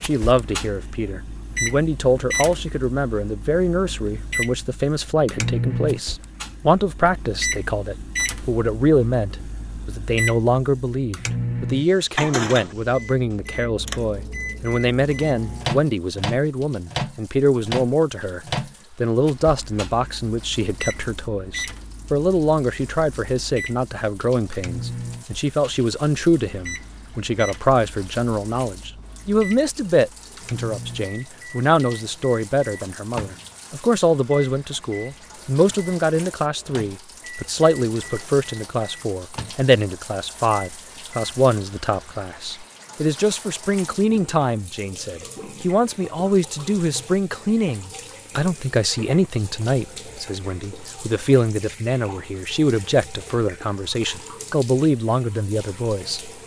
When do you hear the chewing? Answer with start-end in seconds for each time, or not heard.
not heard.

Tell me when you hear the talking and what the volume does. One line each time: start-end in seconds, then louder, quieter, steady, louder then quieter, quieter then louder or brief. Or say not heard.
0.0-56.3 steady.